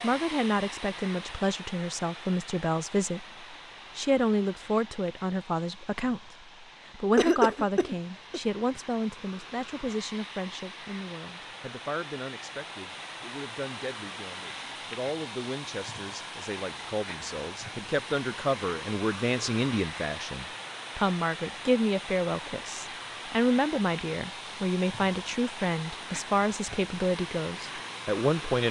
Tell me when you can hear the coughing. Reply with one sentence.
You can hear the coughing from 7.2 to 8.4 s.